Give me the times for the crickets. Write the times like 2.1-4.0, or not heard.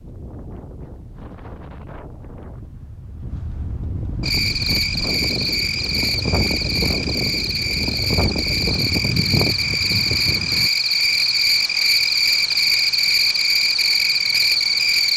4.2-15.1.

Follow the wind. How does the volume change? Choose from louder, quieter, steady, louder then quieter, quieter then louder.
louder.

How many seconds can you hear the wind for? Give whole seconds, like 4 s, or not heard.
11 s.